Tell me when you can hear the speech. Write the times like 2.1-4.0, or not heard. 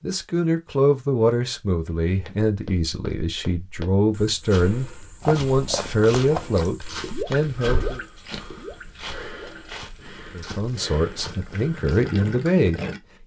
0.0-8.0, 10.3-12.8.